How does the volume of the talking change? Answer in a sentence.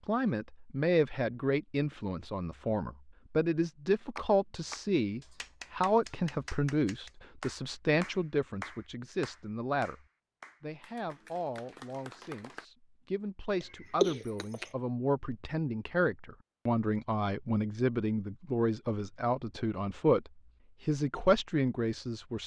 The loudness of the talking goes down, then up.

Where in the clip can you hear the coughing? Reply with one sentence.
The coughing can be heard from 13.6 to 14.7 s.